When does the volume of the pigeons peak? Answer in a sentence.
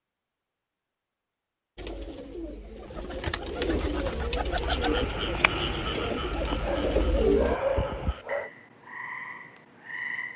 The loudest moment of the pigeons is at 7 seconds.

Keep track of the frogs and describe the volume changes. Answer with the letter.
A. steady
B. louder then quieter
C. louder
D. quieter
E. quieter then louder
D.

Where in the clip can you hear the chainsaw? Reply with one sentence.
The chainsaw can't be heard in this clip.